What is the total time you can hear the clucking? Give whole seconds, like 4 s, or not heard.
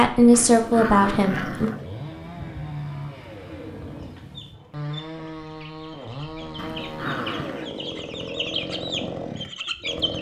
6 s.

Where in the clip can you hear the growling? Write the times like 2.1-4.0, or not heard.
0.3-1.9, 6.5-7.7.